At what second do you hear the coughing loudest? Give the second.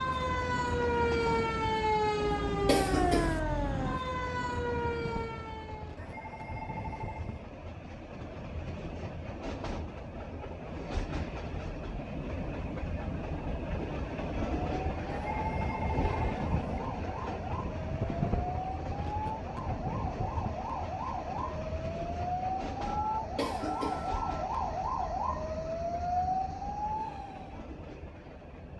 3 s.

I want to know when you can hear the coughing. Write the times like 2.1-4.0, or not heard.
2.6-3.4, 23.4-24.1.